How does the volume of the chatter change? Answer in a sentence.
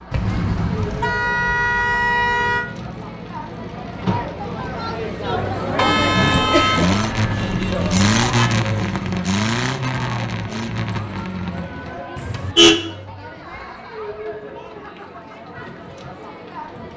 The loudness of the chatter goes up, then down.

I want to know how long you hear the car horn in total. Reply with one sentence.
You can hear the car horn for 6 seconds altogether.